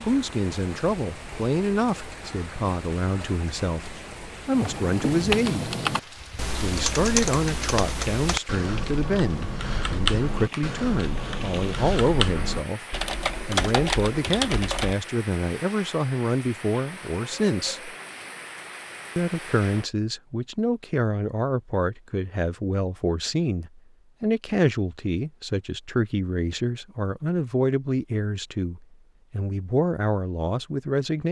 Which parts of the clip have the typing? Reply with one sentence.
You can hear the typing from 4.5 to 14.9 s.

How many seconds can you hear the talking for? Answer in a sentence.
The talking can be heard for 29 seconds in total.